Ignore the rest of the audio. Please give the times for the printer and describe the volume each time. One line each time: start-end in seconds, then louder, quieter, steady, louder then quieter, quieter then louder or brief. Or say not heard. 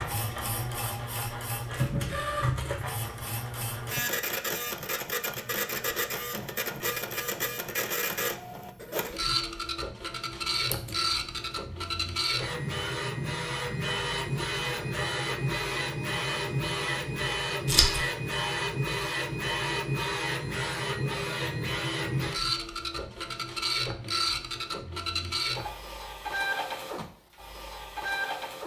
0.0-28.6 steady.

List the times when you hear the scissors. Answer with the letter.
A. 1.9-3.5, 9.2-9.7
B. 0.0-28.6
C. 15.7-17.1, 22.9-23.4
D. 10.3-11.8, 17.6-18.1
D.